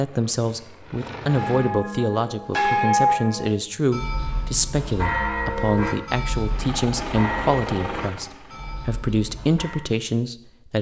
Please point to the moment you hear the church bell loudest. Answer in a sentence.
The loudest moment of the church bell is at 3 seconds.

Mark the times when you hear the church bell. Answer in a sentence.
You can hear the church bell from 1.2 to 9.8 s.